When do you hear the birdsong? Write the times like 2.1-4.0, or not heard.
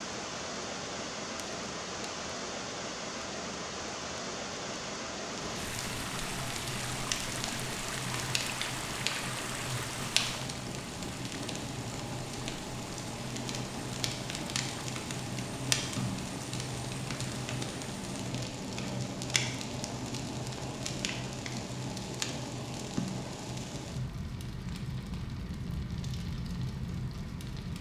not heard.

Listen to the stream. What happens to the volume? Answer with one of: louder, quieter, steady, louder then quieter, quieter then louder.
quieter.